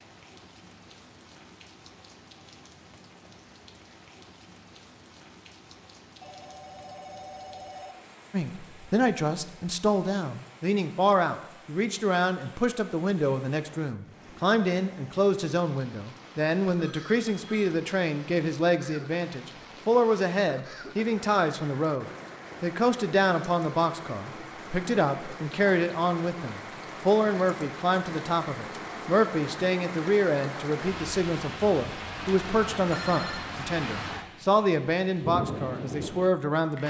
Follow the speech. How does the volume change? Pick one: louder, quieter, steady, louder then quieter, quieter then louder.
steady.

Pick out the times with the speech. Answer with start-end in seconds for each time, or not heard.
8.3-36.8.